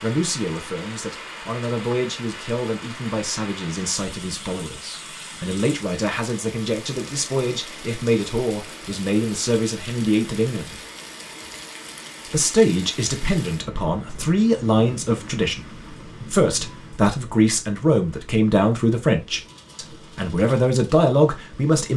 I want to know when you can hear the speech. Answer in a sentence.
You can hear the speech from 0.0 to 10.8 s and from 12.3 to 21.9 s.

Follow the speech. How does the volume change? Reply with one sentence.
The volume of the speech goes up.